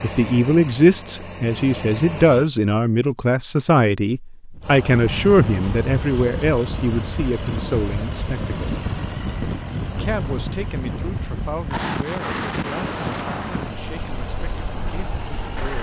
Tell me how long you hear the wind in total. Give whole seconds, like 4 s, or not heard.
11 s.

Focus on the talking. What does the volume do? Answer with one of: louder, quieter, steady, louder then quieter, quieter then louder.
quieter.